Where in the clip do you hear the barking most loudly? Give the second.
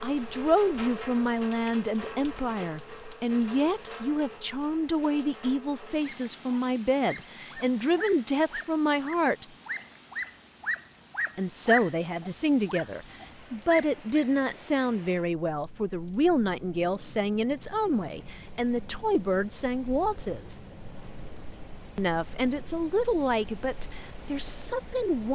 12 s.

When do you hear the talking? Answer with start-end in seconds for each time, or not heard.
0.0-9.4, 11.3-20.6, 21.9-25.3.